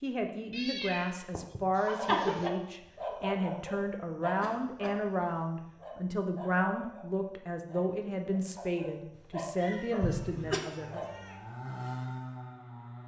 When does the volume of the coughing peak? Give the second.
2 s.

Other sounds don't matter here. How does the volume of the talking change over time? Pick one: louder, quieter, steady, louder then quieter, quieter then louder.
steady.